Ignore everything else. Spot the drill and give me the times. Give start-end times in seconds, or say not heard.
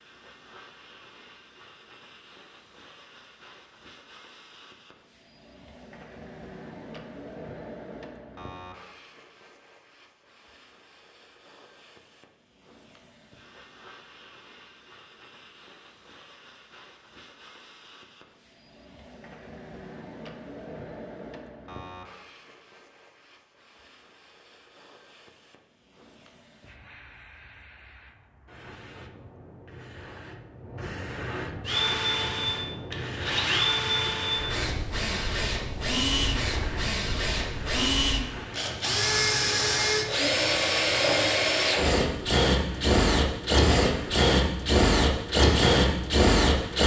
31.6-46.8.